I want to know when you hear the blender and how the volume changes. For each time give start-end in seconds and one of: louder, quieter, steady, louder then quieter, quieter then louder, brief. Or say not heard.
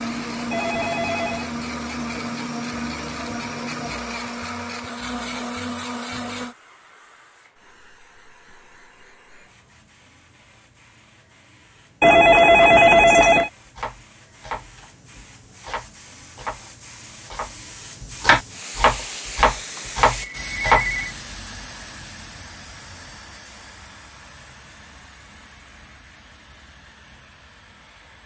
0.0-6.5 steady.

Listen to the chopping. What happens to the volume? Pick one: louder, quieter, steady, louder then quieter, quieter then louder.
louder.